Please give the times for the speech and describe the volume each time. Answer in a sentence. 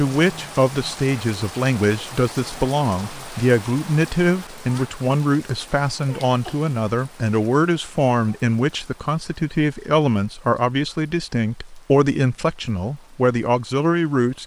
You can hear the speech from 0.0 to 14.4 s, at a steady volume.